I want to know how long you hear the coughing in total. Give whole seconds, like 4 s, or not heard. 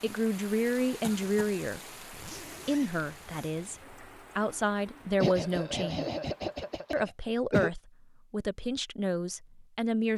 3 s.